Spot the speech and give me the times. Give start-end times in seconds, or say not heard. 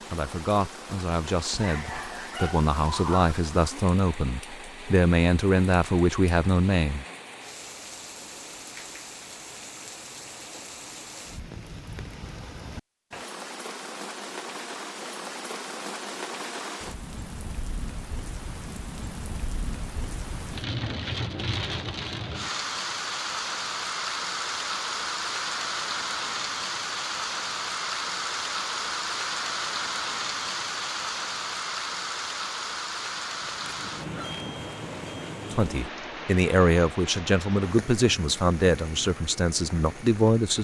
0.1-7.0, 35.5-40.6.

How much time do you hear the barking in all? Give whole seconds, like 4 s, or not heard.
3 s.